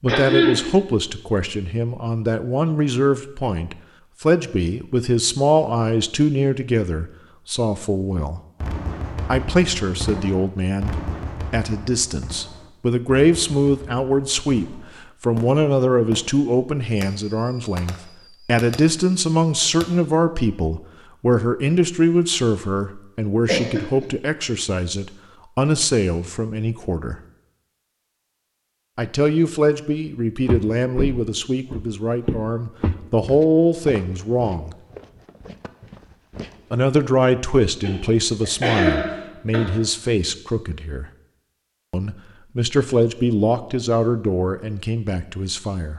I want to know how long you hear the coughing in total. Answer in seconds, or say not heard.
3 s.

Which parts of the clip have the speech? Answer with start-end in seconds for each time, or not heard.
0.0-8.4, 9.2-27.1, 28.9-34.8, 36.7-41.0, 41.9-45.9.